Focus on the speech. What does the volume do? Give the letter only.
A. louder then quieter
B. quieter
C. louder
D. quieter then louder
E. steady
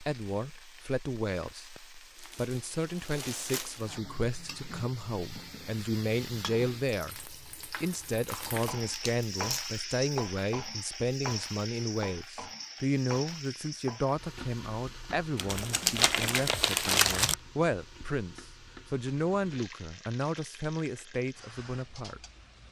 E.